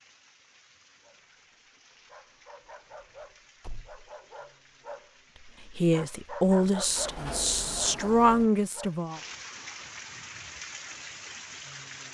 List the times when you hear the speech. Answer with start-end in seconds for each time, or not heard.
5.7-9.2.